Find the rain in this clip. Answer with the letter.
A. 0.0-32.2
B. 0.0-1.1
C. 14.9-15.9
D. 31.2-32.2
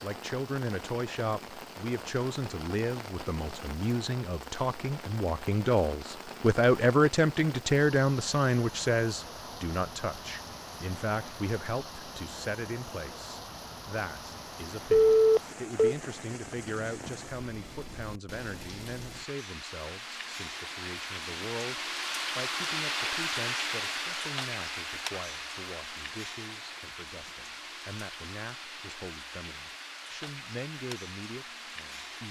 A.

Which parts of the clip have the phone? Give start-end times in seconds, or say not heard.
14.9-15.9.